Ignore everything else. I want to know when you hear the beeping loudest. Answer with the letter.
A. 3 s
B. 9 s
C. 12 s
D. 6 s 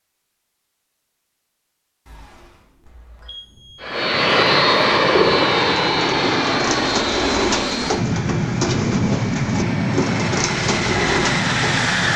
A.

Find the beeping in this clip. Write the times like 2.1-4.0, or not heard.
2.0-3.9.